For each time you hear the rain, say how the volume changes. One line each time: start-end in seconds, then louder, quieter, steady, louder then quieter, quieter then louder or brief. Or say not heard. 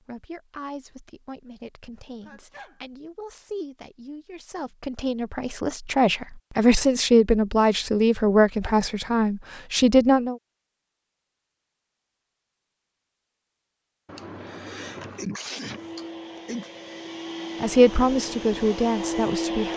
not heard.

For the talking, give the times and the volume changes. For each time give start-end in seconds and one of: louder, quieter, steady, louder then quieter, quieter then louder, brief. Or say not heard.
0.1-10.3 louder
17.6-19.7 brief.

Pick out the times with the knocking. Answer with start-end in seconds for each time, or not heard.
not heard.